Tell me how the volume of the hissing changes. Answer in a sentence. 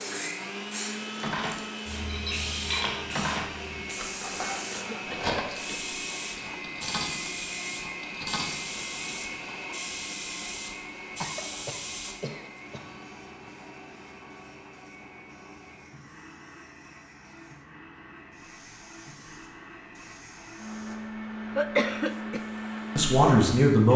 The volume of the hissing goes down.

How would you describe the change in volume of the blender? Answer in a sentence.
The loudness of the blender goes down, then up.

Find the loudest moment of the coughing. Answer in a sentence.
The volume of the coughing peaks at 22 seconds.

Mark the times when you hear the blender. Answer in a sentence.
The blender can be heard from 0.0 to 23.9 s.